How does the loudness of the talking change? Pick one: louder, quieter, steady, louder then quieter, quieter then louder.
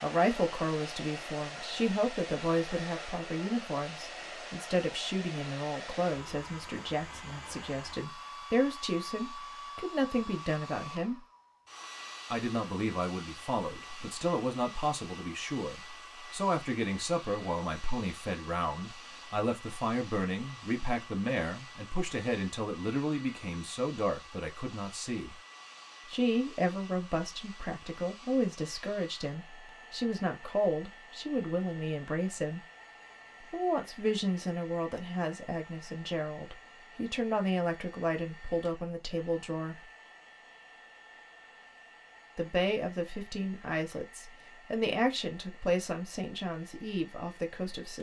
steady.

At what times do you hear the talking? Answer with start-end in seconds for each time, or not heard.
0.0-11.2, 12.3-25.4, 26.1-32.6, 33.5-39.8, 42.4-47.9.